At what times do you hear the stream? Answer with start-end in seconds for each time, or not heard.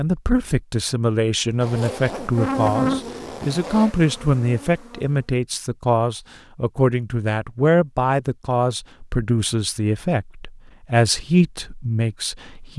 not heard.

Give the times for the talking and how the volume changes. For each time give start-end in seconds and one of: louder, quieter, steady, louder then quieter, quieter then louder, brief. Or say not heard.
0.0-12.7 steady.